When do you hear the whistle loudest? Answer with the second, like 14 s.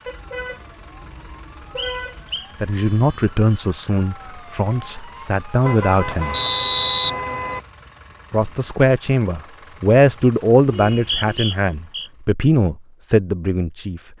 7 s.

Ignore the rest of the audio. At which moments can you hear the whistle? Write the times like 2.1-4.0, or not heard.
1.8-2.5, 6.3-7.1, 10.9-12.1.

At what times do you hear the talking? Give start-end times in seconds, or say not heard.
2.6-6.3, 8.3-14.0.